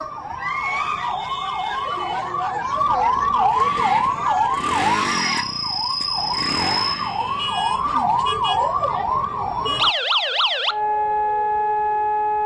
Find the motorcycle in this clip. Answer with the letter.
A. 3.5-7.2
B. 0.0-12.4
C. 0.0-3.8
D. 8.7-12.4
A.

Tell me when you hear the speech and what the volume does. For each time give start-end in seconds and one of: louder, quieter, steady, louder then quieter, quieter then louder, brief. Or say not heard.
not heard.